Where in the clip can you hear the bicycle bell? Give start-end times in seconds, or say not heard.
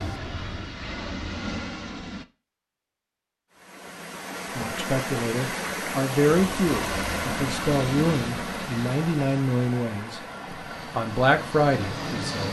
not heard.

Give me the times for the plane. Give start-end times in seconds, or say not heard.
0.0-2.2, 6.5-12.4.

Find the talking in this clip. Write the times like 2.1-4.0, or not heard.
4.5-10.2, 10.9-12.4.